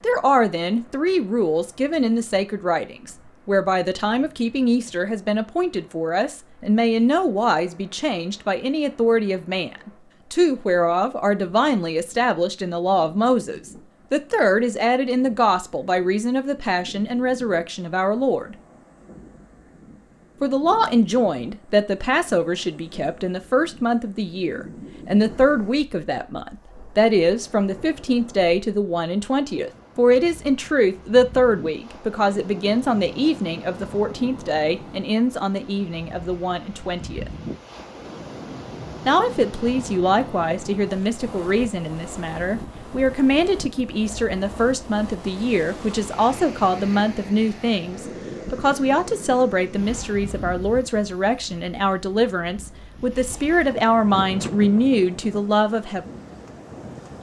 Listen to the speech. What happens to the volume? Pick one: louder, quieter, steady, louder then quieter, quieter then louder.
steady.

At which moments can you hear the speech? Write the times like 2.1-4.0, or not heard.
0.0-18.6, 20.4-37.3, 39.0-56.0.